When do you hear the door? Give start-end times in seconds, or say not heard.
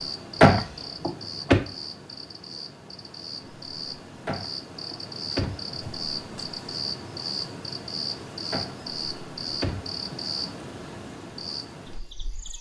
0.4-1.6, 4.2-5.8, 8.5-10.0.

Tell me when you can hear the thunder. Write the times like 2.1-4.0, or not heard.
not heard.